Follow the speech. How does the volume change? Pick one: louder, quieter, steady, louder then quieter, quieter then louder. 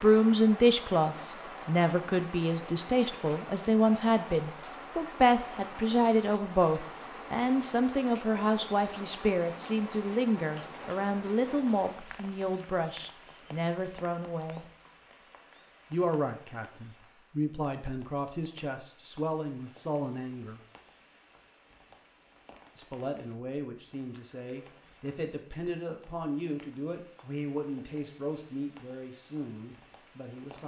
quieter.